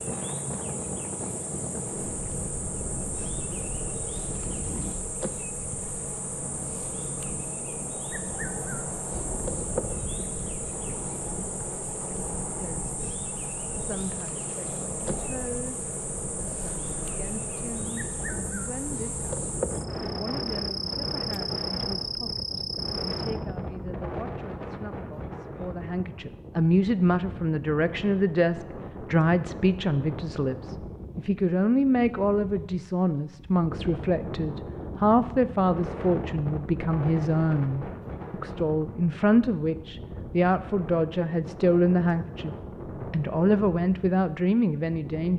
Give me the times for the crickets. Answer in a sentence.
The crickets can be heard from 0.0 to 23.4 s.